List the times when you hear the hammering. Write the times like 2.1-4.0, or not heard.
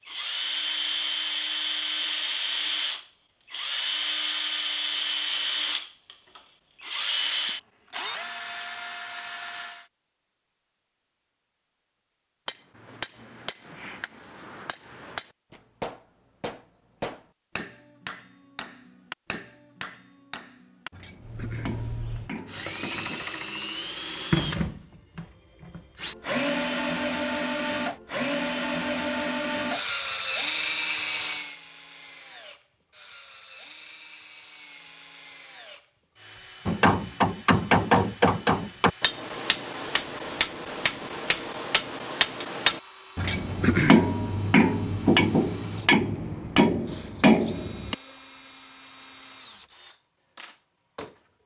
12.4-23.3, 36.6-48.0.